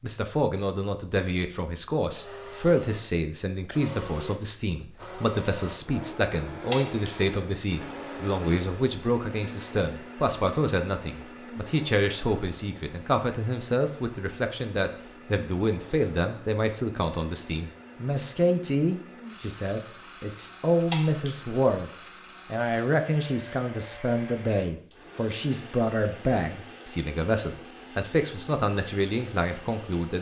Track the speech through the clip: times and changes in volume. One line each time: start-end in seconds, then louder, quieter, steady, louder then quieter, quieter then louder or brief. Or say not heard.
0.0-30.1 steady.